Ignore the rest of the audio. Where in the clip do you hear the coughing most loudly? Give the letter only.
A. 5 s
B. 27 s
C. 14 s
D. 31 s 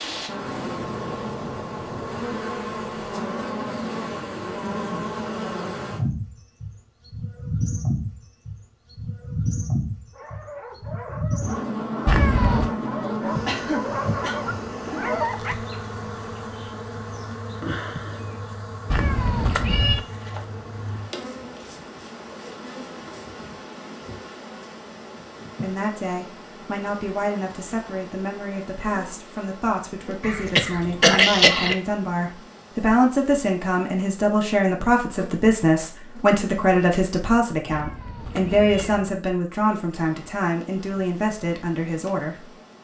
D.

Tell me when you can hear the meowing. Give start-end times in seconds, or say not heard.
12.1-12.7, 18.9-20.0, 37.7-39.1.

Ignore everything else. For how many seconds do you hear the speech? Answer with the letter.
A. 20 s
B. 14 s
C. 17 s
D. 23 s
C.